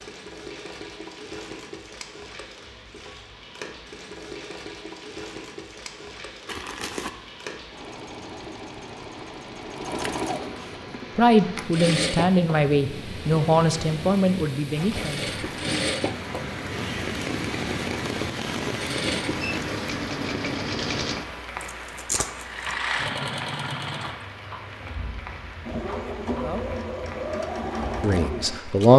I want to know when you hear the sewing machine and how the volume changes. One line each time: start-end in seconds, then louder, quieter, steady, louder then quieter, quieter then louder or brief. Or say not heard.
0.0-28.9 louder.